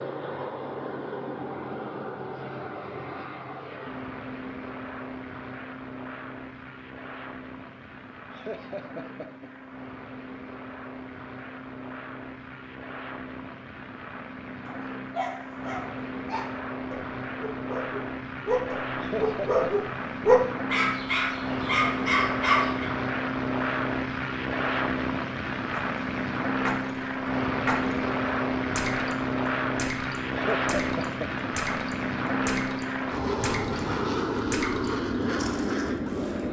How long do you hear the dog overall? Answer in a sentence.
The dog can be heard for 8 seconds in total.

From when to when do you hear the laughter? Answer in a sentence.
You can hear the laughter from 8.3 to 9.5 s, from 18.9 to 19.6 s and from 30.3 to 31.4 s.